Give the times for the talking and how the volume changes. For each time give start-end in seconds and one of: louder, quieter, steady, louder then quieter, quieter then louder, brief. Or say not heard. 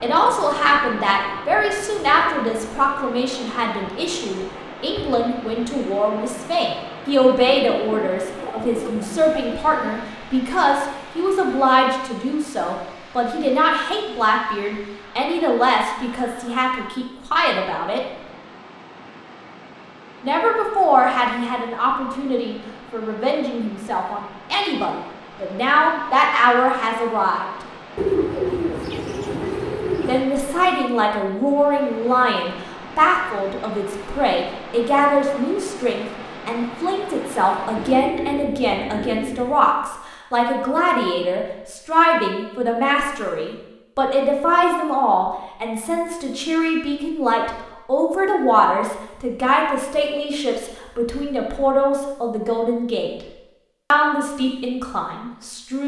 0.0-18.0 steady
20.2-27.5 quieter then louder
30.1-53.1 steady
53.9-55.8 brief.